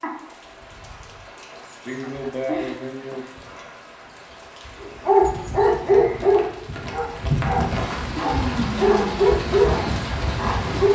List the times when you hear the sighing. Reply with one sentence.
You can hear the sighing from 1.9 to 3.2 s and from 8.2 to 9.2 s.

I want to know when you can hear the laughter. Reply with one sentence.
You can't hear the laughter here.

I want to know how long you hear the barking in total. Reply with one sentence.
The barking can be heard for 6 seconds in total.